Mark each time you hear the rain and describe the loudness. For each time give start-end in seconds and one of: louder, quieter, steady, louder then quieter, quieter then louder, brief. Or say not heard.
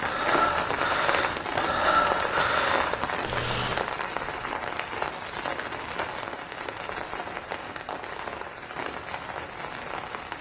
0.0-10.3 quieter.